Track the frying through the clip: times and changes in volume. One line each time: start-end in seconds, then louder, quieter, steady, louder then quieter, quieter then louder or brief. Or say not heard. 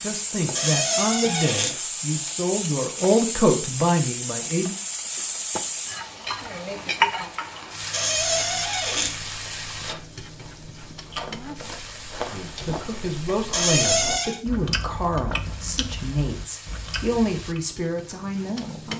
0.0-18.9 quieter.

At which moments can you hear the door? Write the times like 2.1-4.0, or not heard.
0.6-1.8, 7.9-9.2, 13.5-14.4.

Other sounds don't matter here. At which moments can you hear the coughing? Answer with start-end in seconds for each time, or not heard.
not heard.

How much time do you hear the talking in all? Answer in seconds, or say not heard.
11 s.